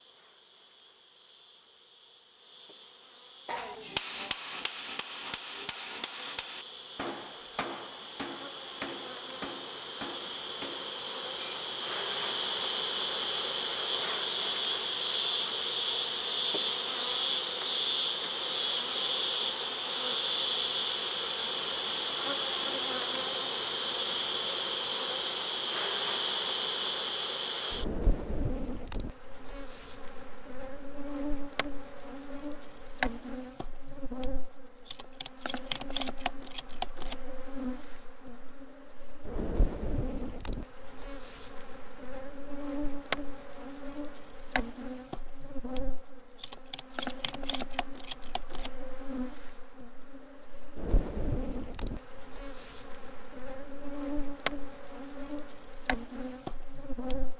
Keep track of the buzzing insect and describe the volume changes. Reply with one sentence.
The volume of the buzzing insect goes up, then down.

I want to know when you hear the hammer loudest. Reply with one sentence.
The loudest moment of the hammer is at 4 seconds.